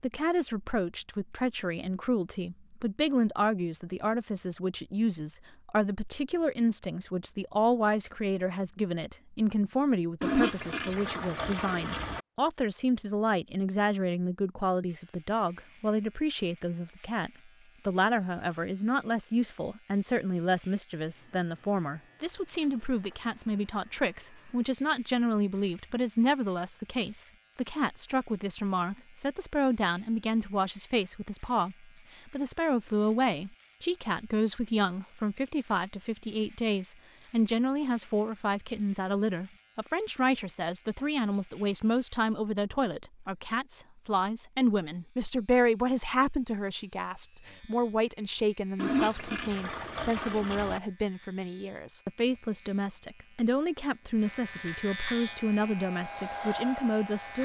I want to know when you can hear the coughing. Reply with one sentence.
You can't hear the coughing here.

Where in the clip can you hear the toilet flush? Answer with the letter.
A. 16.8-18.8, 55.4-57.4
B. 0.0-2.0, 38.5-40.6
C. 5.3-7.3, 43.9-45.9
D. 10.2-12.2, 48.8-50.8
D.